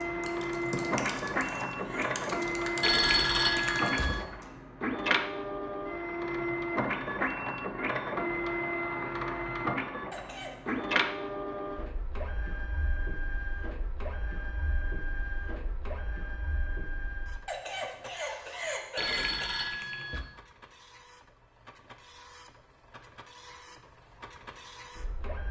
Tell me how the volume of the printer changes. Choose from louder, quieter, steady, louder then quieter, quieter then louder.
quieter.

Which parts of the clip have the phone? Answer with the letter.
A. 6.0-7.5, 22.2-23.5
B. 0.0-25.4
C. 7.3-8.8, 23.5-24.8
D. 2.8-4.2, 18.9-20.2
D.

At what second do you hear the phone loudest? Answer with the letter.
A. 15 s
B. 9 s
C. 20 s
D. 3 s
D.